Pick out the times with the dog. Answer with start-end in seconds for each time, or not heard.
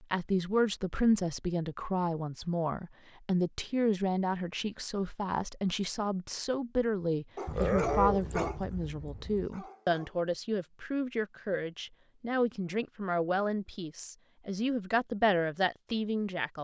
7.3-10.2.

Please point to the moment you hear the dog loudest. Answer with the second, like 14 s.
8 s.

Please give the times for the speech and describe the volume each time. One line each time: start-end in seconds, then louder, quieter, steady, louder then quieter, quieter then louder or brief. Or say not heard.
0.0-16.5 steady.